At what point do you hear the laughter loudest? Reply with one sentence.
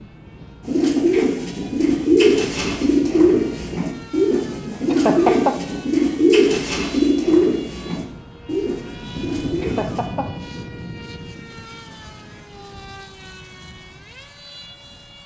The volume of the laughter peaks at 5 seconds.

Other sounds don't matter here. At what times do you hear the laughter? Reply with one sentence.
The laughter can be heard from 4.8 to 5.5 s and from 9.6 to 10.3 s.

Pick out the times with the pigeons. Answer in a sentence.
The pigeons can be heard from 0.7 to 10.1 s.